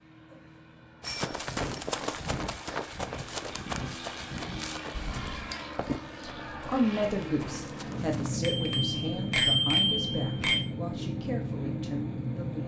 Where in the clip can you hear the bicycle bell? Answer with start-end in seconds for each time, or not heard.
1.0-1.8, 5.0-5.5, 8.4-10.7.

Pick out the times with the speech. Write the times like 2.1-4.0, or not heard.
6.2-12.6.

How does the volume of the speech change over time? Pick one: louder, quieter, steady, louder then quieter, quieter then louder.
quieter.